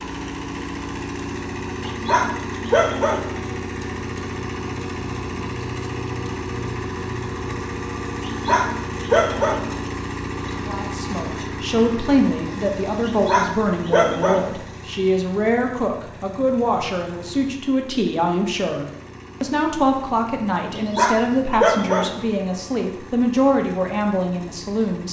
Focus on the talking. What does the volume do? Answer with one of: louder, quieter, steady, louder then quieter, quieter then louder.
steady.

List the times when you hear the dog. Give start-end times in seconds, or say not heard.
1.9-3.3, 8.2-9.7, 13.1-14.5, 20.7-22.2.